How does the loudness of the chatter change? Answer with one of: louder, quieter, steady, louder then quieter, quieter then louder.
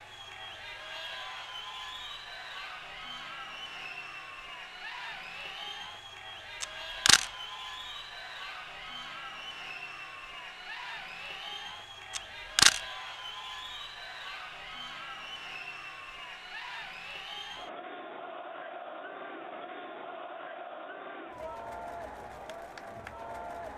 steady.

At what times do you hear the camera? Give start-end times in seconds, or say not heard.
6.6-7.2, 12.2-12.8.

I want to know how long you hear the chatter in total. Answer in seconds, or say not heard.
24 s.